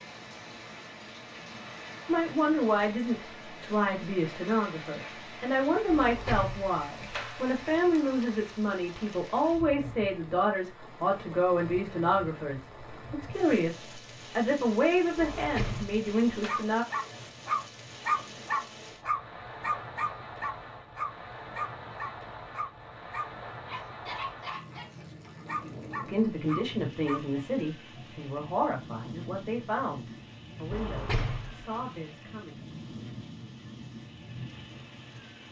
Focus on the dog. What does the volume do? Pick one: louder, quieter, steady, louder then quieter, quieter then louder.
quieter.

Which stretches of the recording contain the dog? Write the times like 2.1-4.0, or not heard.
16.4-27.2.